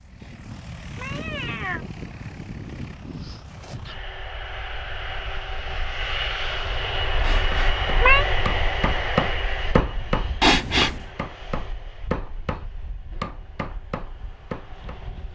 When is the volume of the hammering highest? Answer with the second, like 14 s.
9 s.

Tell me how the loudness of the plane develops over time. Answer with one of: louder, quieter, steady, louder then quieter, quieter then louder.
louder then quieter.